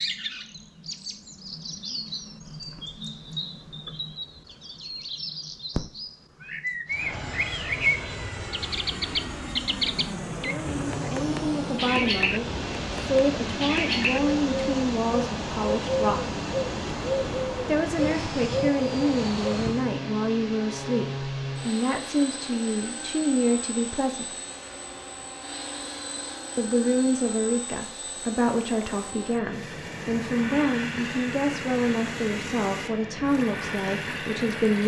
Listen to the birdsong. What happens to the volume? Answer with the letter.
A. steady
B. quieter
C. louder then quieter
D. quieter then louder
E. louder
E.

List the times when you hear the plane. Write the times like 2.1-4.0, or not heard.
6.8-34.8.